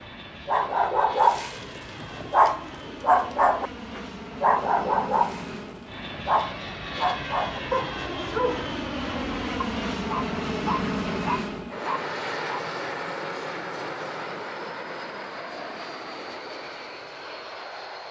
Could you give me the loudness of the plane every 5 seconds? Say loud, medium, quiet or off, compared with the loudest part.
medium, loud, loud, medium.